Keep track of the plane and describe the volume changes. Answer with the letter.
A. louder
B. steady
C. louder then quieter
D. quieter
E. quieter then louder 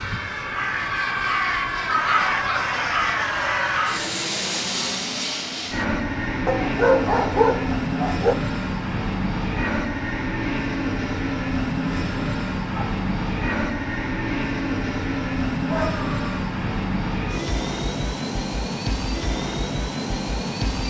B.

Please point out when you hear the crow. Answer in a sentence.
The crow can be heard from 0.0 to 4.2 s.